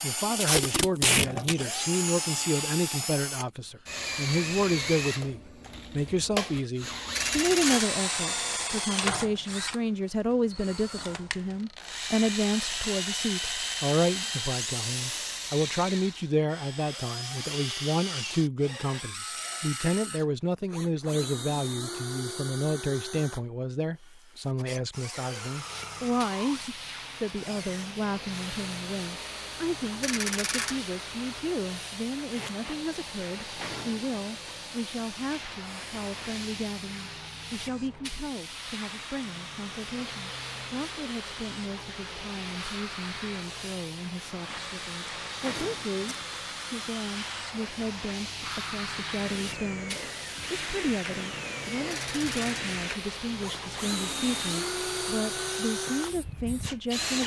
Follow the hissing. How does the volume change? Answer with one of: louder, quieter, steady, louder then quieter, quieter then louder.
steady.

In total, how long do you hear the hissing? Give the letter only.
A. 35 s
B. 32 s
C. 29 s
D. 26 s
B.